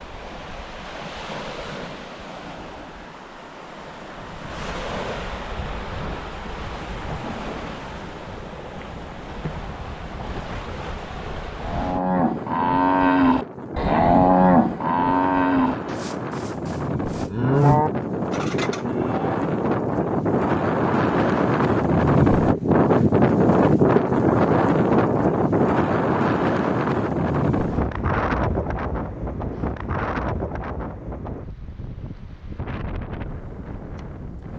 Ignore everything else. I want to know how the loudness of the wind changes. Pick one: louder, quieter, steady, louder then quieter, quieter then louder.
louder then quieter.